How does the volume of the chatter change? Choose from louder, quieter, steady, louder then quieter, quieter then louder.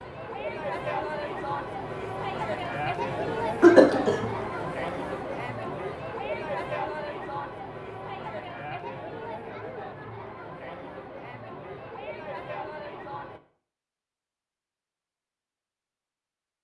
quieter.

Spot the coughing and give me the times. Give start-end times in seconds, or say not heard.
3.2-4.2.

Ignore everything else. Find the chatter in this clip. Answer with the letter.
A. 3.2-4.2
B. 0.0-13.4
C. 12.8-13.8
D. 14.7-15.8
B.